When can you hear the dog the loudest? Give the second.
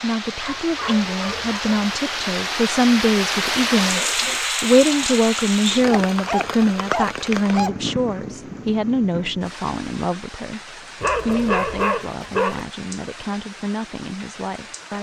12 s.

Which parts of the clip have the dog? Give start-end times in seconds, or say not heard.
0.3-1.9, 5.9-7.8, 11.0-12.7.